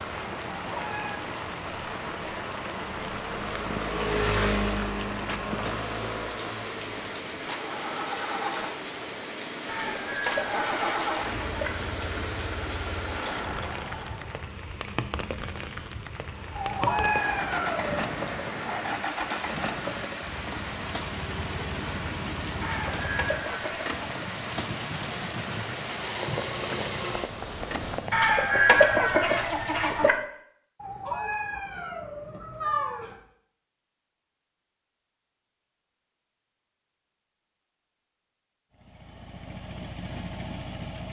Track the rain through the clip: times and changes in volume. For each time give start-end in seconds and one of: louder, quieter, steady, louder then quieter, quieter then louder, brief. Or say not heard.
0.0-28.3 steady.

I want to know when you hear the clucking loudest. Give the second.
29 s.